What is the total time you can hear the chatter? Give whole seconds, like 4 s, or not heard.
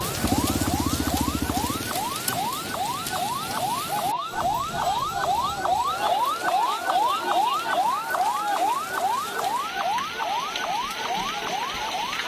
not heard.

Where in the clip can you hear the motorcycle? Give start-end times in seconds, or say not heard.
0.0-2.0.